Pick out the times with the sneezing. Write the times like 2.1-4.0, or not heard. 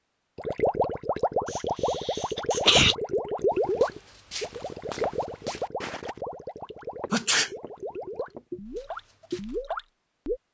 1.5-3.0, 7.1-7.5.